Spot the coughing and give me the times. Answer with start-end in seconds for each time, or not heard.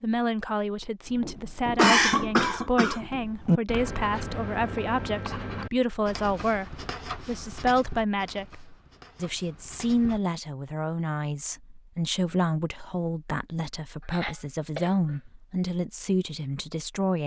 1.8-3.1, 14.0-15.2.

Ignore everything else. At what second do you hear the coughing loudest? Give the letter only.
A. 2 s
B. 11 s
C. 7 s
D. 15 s
A.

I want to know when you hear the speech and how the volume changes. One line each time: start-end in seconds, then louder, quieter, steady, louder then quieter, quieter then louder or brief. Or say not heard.
0.0-17.2 steady.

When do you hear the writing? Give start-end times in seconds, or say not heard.
1.1-10.2.